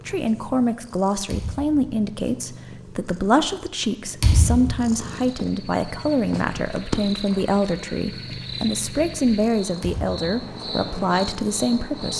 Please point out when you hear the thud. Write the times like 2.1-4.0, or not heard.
1.2-1.8, 4.2-4.8, 9.8-10.2.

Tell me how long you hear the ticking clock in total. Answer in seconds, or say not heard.
not heard.